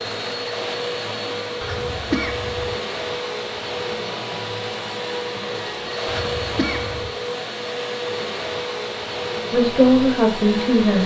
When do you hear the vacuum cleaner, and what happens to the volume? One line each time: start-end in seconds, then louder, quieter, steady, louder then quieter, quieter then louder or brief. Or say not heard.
0.0-11.0 steady.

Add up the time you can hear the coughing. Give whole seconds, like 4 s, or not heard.
2 s.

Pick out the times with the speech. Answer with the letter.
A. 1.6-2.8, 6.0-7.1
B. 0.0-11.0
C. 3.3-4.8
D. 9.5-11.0
D.